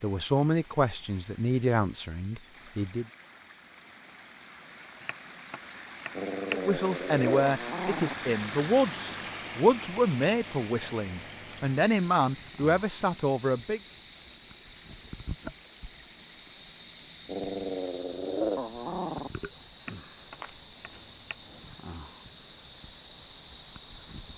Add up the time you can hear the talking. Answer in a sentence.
The talking can be heard for 10 seconds in total.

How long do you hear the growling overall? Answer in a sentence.
The growling can be heard for 4 seconds in total.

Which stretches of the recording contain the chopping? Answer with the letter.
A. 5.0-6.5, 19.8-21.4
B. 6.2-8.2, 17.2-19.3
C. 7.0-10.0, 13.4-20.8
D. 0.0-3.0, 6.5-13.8
A.